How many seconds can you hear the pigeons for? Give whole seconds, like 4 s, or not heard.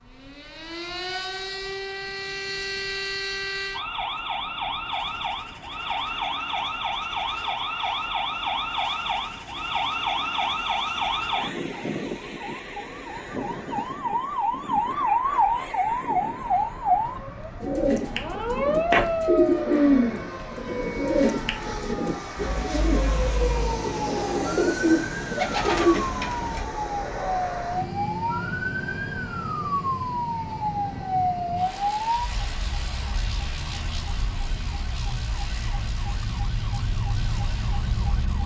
9 s.